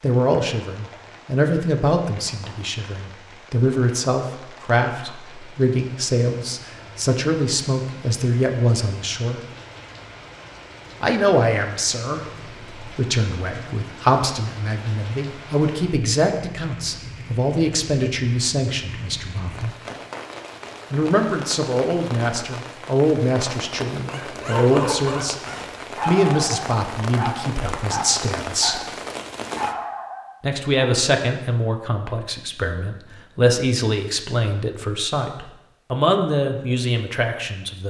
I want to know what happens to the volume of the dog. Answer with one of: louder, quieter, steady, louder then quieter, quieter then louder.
steady.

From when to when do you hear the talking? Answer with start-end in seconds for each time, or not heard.
0.0-9.4, 11.0-19.7, 20.9-28.8, 30.4-37.8.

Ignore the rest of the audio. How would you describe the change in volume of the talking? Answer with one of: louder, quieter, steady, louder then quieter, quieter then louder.
steady.